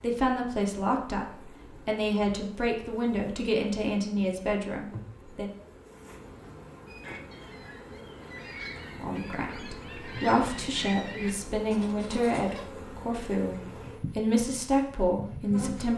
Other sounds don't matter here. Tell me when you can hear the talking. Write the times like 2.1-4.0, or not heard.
0.0-5.5, 8.9-15.9.